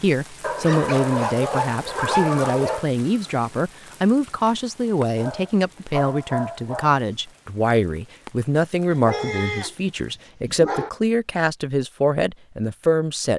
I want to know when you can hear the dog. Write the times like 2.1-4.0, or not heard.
0.4-2.9, 5.2-7.0, 8.9-9.8, 10.4-10.9.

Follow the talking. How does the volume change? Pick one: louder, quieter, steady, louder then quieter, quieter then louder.
steady.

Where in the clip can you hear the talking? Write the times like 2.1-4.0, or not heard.
0.0-13.3.